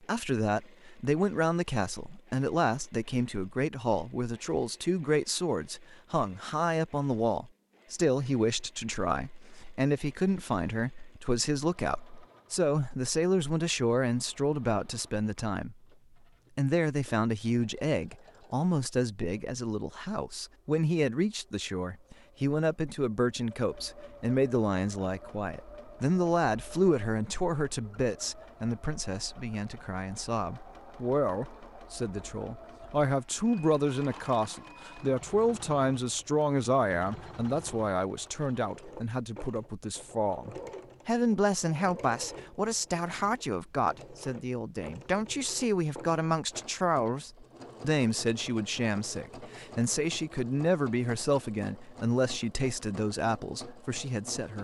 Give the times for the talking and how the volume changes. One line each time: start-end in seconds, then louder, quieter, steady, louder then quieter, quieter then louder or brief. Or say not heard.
0.0-15.8 steady
16.6-54.5 steady.